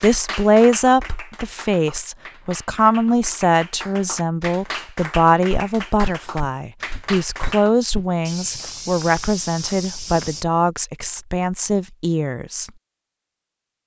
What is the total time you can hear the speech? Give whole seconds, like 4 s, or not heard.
13 s.